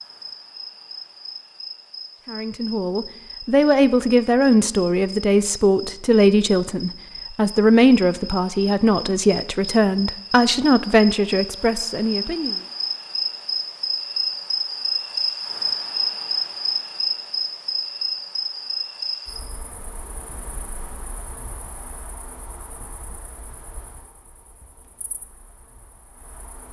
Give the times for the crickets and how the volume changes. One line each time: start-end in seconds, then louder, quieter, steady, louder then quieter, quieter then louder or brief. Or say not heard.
0.0-26.6 louder then quieter.